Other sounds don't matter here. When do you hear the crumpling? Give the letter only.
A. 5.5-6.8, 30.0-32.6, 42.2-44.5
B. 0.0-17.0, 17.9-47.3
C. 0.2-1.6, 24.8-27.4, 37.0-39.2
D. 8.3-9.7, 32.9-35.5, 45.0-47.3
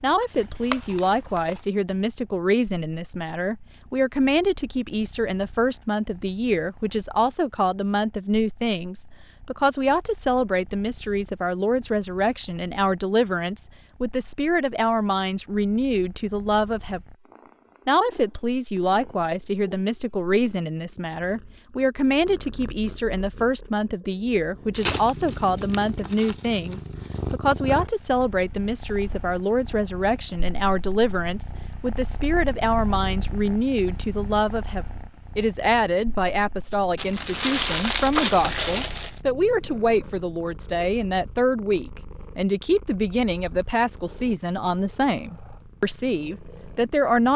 C.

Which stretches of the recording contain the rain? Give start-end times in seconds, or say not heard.
not heard.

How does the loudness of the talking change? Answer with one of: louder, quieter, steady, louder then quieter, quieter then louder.
steady.